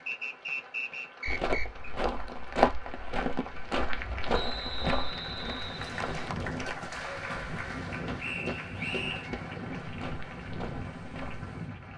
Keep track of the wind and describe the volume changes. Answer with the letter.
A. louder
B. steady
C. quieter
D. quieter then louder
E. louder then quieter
A.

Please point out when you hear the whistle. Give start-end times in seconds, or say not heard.
0.1-1.9, 4.3-6.3, 8.2-9.3.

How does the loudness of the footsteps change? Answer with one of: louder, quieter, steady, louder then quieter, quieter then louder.
quieter.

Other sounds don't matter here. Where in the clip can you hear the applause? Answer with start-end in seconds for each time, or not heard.
0.0-11.9.